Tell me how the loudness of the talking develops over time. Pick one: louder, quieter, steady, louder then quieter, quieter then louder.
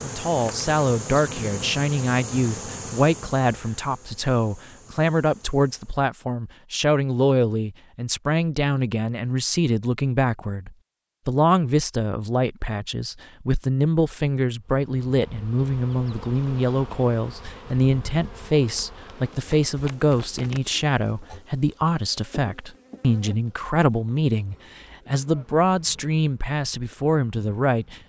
steady.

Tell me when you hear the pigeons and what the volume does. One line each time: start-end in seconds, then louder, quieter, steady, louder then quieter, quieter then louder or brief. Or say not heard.
not heard.